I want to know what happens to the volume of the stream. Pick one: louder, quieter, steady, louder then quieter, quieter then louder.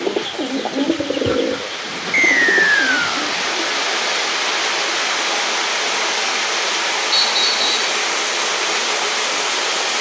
louder.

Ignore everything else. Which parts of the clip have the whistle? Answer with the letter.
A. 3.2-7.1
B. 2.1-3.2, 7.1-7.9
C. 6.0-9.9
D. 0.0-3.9
B.